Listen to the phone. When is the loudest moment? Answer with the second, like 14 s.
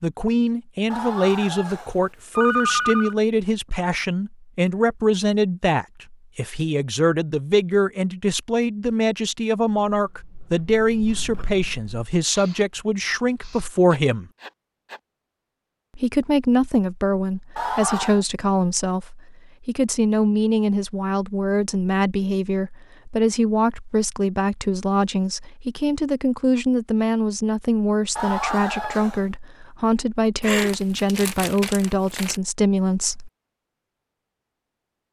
3 s.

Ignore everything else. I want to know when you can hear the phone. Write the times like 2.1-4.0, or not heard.
0.9-3.1, 17.6-18.2, 28.1-29.2.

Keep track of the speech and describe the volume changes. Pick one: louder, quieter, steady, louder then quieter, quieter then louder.
steady.